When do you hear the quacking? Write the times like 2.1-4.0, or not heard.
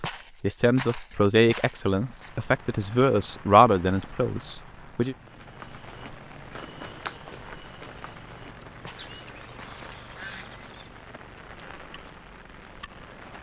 8.9-10.9.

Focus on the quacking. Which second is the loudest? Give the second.
10 s.